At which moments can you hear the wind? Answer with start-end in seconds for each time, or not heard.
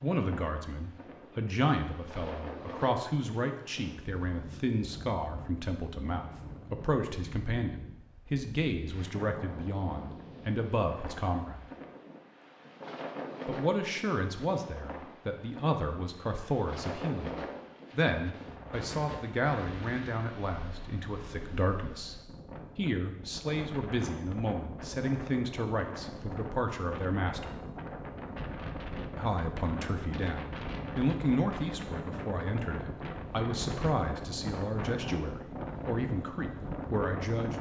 0.0-37.5.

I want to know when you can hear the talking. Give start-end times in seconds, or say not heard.
0.0-11.7, 13.4-22.1, 22.8-27.6, 29.1-37.5.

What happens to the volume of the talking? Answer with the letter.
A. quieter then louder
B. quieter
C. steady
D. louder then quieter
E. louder
C.